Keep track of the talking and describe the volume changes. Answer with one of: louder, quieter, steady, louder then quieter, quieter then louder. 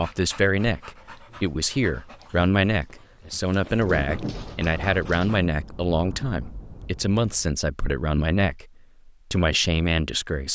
steady.